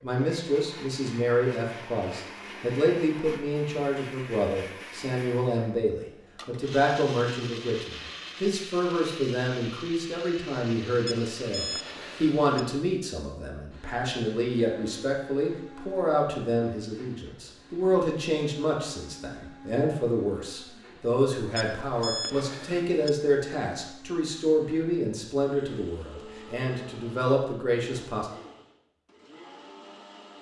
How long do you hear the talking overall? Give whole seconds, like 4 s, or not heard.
28 s.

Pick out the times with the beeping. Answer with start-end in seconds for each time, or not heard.
11.1-12.4, 21.6-23.1.